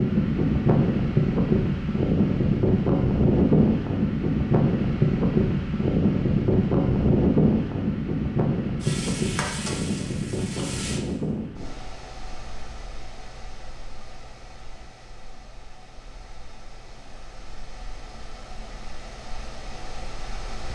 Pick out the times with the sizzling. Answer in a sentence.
The sizzling can be heard from 8.8 to 11.0 s.